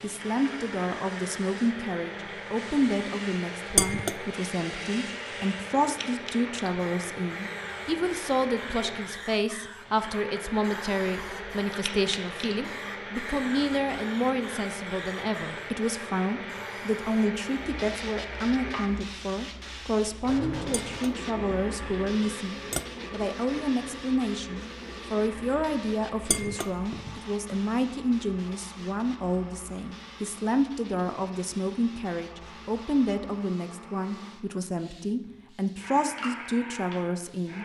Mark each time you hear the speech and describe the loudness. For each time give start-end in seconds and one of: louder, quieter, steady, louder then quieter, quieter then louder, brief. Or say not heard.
0.0-37.6 steady.